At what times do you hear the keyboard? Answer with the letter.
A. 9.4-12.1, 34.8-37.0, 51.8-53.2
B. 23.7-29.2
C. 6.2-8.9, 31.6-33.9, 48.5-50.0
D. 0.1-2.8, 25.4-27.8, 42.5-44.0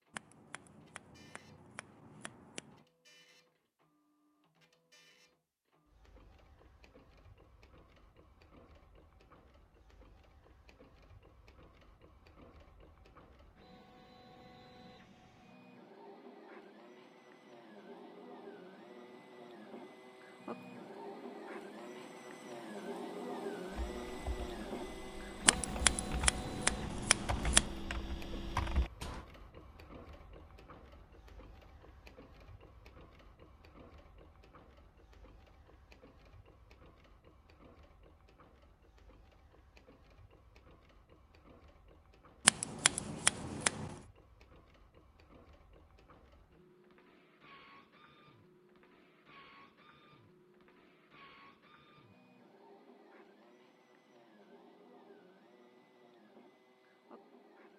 B.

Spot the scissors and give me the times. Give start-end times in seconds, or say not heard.
0.1-2.8, 25.4-27.8, 42.5-44.0.